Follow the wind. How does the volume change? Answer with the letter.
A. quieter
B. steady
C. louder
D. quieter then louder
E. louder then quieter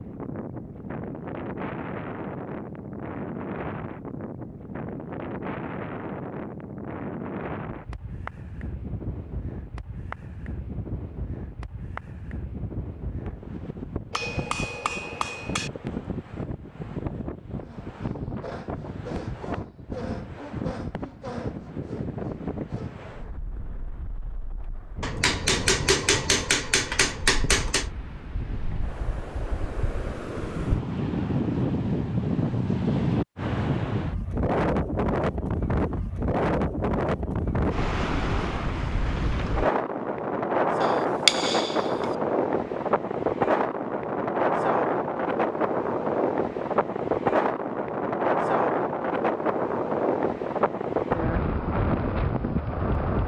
C.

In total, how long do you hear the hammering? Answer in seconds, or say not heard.
6 s.